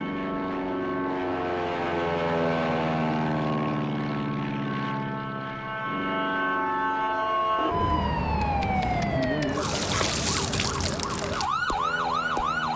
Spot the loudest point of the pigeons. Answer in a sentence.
The volume of the pigeons peaks at 8 seconds.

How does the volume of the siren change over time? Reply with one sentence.
The loudness of the siren goes up.